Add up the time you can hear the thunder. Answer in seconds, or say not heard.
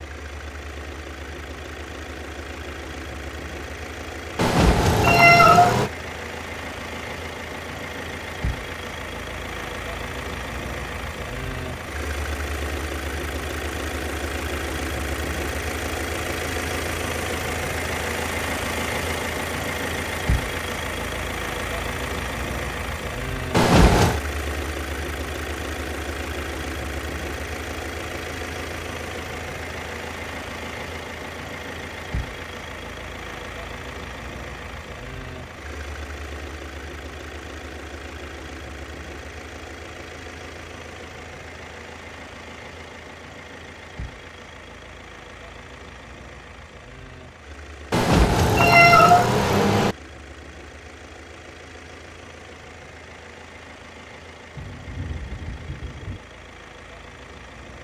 2 s.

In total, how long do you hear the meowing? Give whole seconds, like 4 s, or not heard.
4 s.